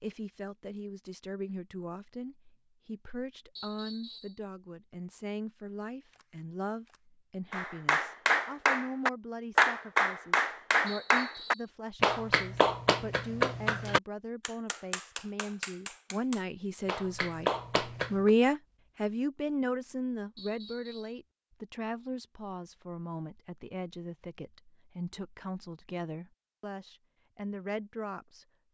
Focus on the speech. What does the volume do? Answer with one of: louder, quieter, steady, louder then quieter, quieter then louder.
louder then quieter.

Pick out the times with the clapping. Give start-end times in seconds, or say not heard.
7.5-18.3.